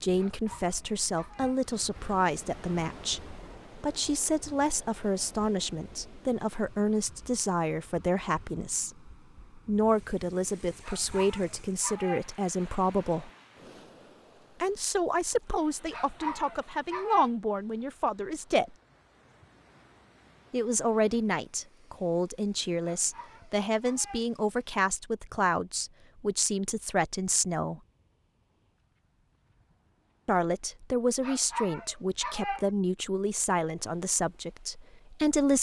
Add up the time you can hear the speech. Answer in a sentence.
You can hear the speech for 30 seconds altogether.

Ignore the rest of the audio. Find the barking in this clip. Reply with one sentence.
You can hear the barking from 0.1 to 1.6 s, from 10.8 to 12.3 s, from 15.9 to 17.3 s, from 22.8 to 24.3 s and from 31.2 to 32.7 s.